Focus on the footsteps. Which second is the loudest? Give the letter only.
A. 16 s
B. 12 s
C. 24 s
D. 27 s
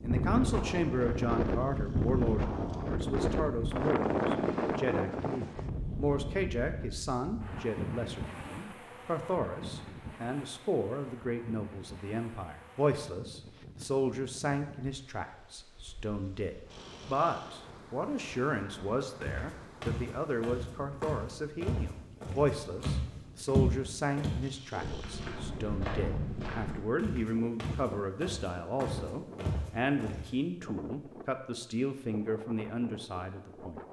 C.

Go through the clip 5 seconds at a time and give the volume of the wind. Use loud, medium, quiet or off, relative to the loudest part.
loud, medium, quiet, quiet, quiet, quiet, quiet.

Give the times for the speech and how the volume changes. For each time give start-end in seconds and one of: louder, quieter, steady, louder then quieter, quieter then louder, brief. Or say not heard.
0.0-33.8 steady.